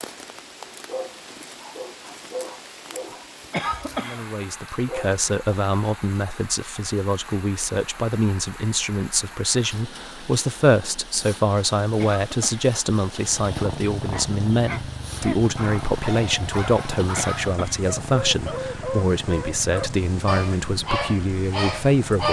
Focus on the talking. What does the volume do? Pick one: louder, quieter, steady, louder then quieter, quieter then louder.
steady.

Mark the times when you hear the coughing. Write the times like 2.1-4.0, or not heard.
3.5-4.2, 11.9-12.7, 17.1-17.9.